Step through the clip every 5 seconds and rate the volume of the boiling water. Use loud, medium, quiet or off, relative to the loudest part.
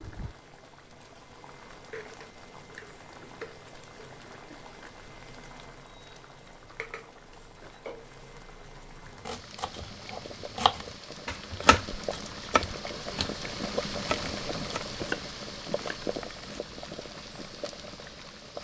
medium, medium, loud, loud.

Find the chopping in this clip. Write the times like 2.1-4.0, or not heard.
9.2-16.6.